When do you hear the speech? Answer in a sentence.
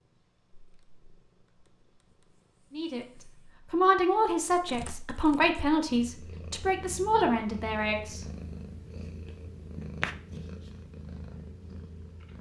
The speech can be heard from 2.7 to 8.2 s.